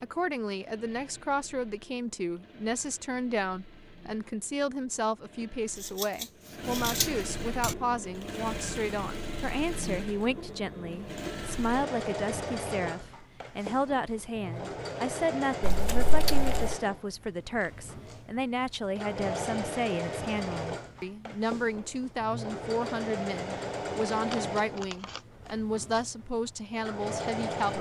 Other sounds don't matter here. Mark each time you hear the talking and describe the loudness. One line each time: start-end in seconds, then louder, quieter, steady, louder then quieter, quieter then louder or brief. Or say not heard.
0.0-27.7 steady.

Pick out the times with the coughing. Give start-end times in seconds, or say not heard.
not heard.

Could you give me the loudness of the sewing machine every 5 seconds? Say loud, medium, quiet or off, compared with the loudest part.
quiet, loud, loud, loud, loud, loud.